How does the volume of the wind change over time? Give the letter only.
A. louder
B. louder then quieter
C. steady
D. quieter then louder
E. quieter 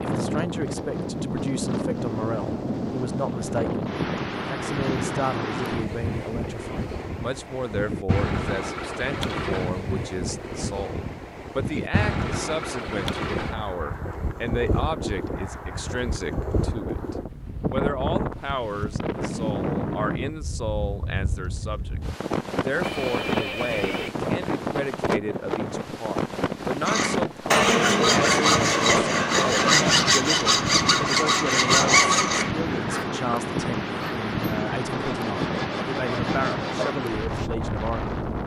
C.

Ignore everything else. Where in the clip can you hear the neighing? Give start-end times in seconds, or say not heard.
22.8-24.1.